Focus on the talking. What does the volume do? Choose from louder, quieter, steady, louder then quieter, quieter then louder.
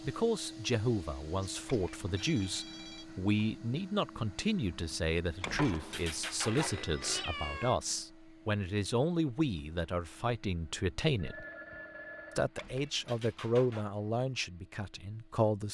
steady.